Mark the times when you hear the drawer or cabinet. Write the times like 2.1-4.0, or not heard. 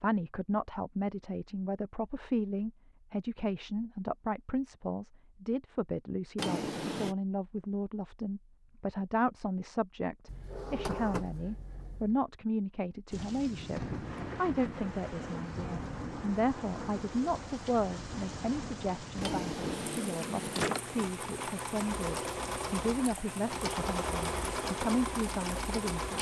6.3-7.2, 10.2-12.2, 19.2-21.1.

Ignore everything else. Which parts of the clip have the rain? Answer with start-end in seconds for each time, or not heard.
13.1-26.1.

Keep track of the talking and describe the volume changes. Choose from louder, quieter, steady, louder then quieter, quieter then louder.
steady.